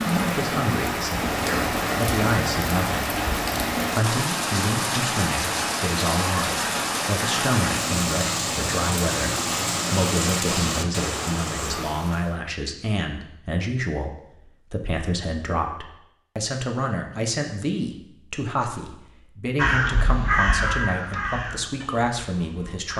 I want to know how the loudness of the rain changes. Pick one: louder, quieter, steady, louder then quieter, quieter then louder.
steady.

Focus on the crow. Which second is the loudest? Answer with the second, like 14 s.
20 s.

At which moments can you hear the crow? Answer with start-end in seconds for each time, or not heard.
19.6-22.9.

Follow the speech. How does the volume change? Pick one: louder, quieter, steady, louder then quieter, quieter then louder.
steady.